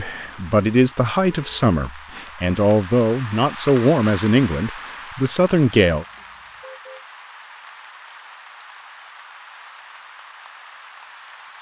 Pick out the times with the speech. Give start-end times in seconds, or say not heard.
0.0-6.0.